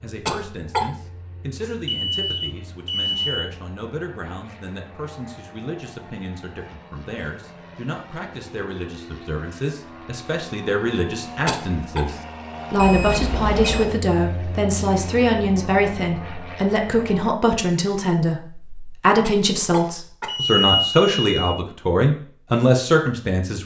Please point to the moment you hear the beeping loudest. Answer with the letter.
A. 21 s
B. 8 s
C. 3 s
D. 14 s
A.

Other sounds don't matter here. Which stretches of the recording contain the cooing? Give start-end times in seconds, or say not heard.
not heard.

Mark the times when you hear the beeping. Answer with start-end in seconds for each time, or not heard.
1.6-3.4, 12.8-13.9, 20.2-21.6.